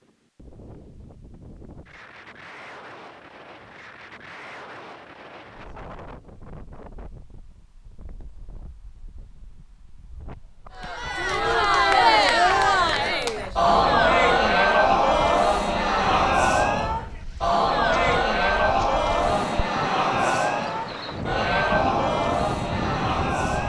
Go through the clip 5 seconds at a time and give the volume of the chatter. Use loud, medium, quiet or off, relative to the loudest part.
off, off, loud, loud, medium.